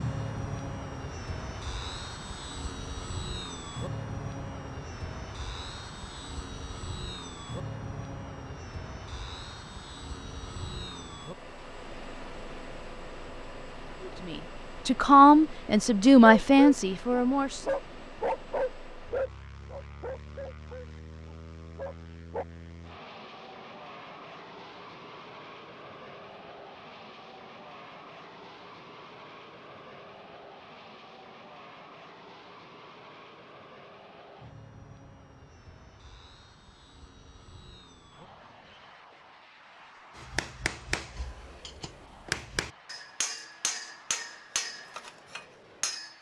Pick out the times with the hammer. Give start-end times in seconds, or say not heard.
40.1-46.1.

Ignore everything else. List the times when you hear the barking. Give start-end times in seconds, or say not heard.
16.2-22.4.